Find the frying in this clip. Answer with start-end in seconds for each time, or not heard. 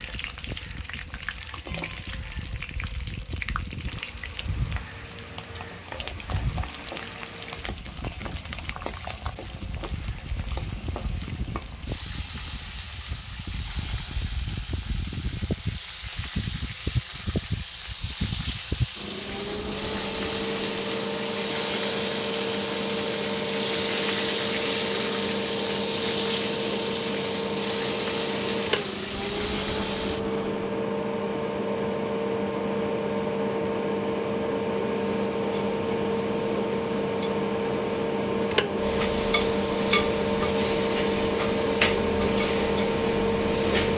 0.0-30.2, 35.0-43.9.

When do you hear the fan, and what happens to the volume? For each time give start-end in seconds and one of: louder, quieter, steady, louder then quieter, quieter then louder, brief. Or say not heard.
0.0-43.9 louder.